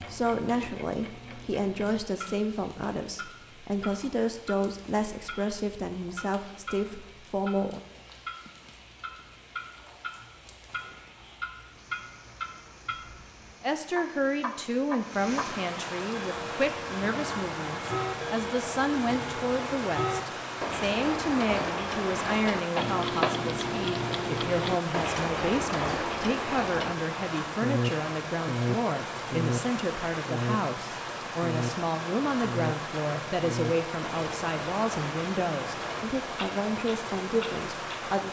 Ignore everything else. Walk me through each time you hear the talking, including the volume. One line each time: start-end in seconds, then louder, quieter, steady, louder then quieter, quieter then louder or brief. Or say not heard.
0.0-7.8 steady
13.6-38.2 steady.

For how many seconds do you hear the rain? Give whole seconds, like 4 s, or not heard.
38 s.